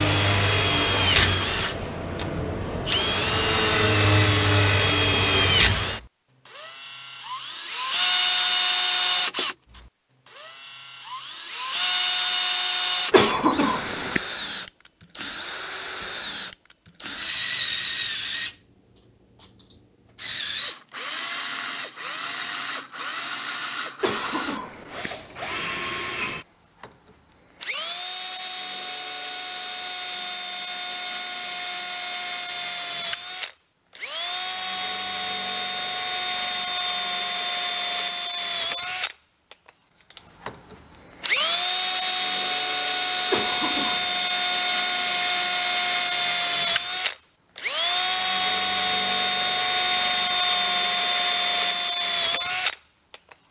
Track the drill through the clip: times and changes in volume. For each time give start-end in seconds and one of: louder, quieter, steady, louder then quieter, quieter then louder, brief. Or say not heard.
0.0-53.1 quieter then louder.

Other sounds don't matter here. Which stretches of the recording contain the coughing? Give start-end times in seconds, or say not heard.
13.1-14.2, 24.0-25.1, 43.3-44.2.